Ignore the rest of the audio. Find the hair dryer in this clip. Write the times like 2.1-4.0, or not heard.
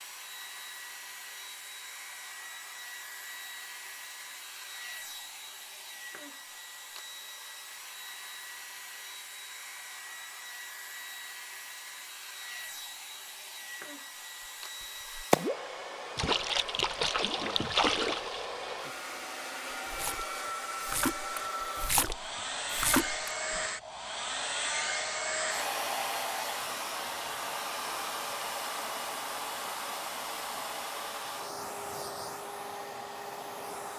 0.0-33.9.